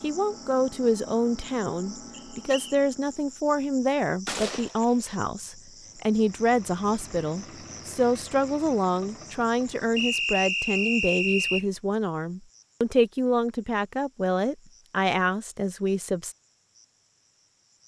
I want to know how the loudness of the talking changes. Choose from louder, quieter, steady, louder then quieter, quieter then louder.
steady.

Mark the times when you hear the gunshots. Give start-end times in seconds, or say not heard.
4.2-5.2.